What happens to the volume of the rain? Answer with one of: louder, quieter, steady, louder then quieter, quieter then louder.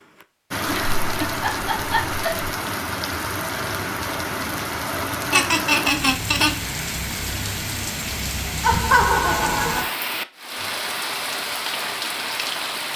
steady.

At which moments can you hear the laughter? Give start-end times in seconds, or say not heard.
0.7-2.5, 5.3-6.5, 8.6-9.9.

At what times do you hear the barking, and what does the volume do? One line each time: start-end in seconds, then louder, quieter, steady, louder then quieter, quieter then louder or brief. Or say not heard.
not heard.